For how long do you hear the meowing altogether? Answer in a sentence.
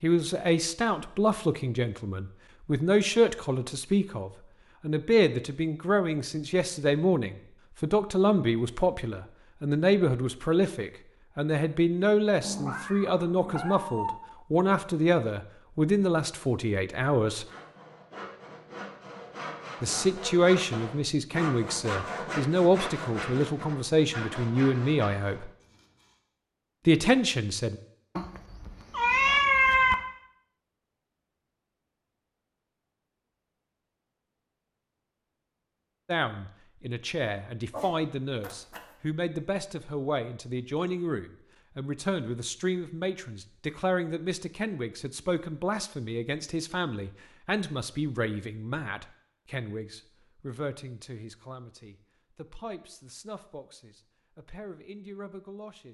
The meowing can be heard for 5 seconds in total.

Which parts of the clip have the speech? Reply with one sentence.
The speech can be heard from 0.0 to 17.4 s, from 19.8 to 25.5 s, from 26.9 to 27.8 s and from 36.0 to 55.8 s.